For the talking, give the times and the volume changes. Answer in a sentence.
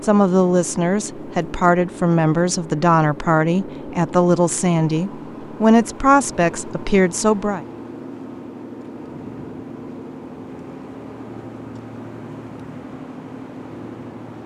The talking can be heard from 0.0 to 7.6 s, at a steady volume.